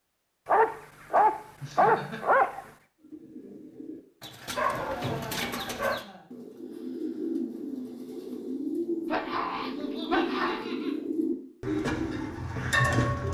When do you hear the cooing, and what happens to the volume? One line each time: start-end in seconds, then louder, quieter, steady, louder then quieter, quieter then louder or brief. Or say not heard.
3.0-13.2 louder.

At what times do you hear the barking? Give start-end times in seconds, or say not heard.
0.5-2.6, 4.5-6.0, 9.1-10.7.